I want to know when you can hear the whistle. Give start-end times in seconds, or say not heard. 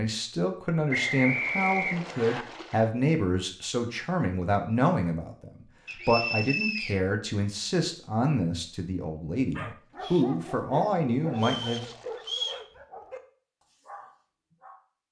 0.9-2.5, 5.8-7.0, 11.3-12.7.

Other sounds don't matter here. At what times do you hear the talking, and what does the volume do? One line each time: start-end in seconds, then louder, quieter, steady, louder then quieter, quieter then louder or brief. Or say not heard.
0.0-11.8 steady.